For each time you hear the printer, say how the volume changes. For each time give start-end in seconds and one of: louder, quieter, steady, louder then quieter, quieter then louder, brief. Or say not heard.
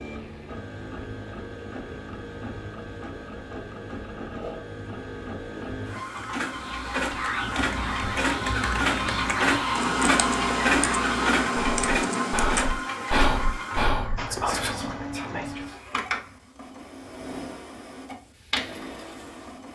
0.0-19.6 louder then quieter.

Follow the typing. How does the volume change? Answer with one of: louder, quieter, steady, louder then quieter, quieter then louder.
louder.